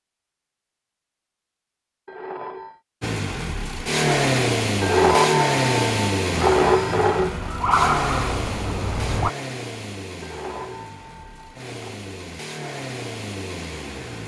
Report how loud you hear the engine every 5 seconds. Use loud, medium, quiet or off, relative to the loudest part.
loud, loud, quiet.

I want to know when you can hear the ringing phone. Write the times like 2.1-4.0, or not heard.
2.0-2.8, 4.8-7.3, 10.2-12.0.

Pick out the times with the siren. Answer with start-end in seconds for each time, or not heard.
6.3-9.3.